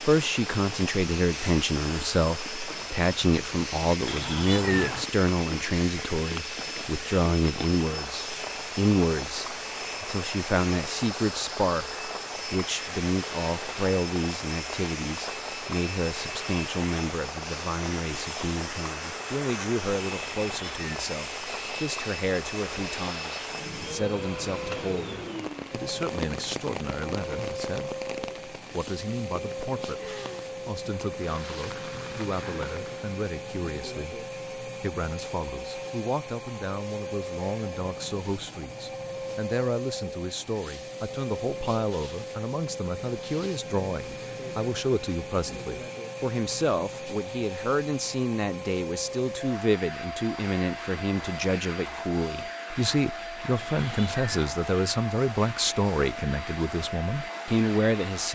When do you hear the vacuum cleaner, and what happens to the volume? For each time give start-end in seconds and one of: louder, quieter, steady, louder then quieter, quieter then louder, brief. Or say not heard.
0.0-58.3 steady.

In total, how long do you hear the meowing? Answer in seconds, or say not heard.
3 s.